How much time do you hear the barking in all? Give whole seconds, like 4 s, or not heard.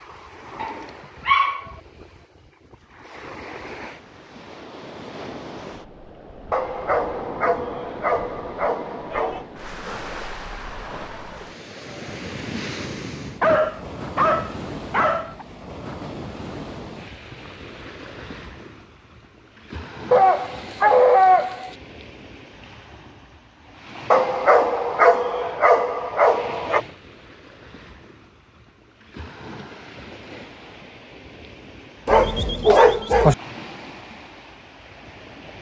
12 s.